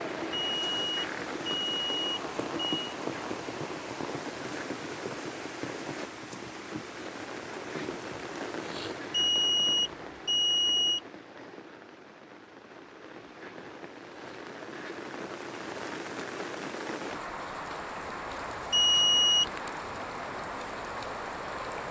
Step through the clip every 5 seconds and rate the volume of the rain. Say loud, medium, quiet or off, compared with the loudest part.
loud, loud, medium, loud, loud.